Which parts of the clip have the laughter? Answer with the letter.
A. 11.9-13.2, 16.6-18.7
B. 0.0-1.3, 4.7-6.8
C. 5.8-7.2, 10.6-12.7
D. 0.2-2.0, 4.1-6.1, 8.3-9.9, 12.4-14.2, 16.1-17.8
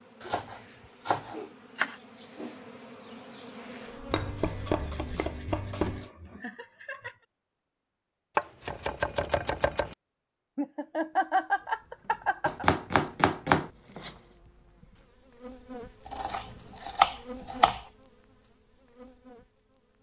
C.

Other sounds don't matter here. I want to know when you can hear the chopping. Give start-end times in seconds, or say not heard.
0.2-2.0, 4.1-6.1, 8.3-9.9, 12.4-14.2, 16.1-17.8.